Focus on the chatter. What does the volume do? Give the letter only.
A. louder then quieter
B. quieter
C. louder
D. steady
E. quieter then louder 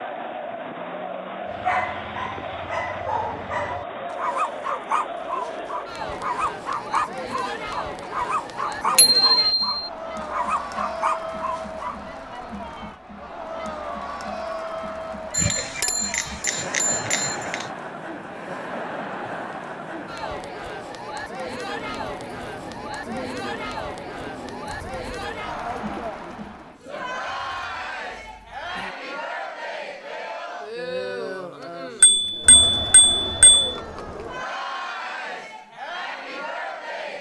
D.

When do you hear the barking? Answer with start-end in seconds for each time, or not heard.
1.5-12.0.